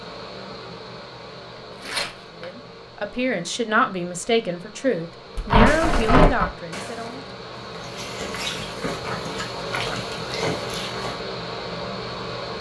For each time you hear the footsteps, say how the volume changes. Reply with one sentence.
The footsteps can be heard from 5.3 to 11.2 s, getting quieter then louder.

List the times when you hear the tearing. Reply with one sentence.
You can hear the tearing from 1.8 to 2.5 s, from 5.5 to 6.5 s and from 9.8 to 10.9 s.